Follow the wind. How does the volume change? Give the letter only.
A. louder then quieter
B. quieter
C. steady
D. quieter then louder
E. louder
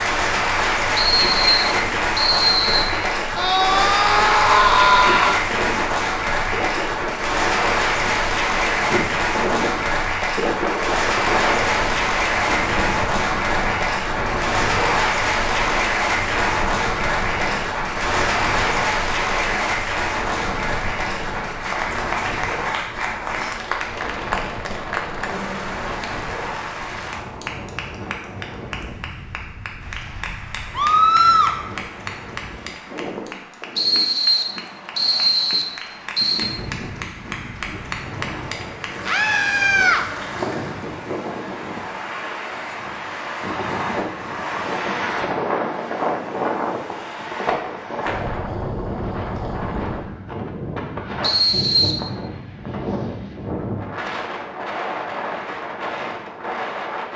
D.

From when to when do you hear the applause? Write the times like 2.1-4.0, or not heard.
0.0-41.0.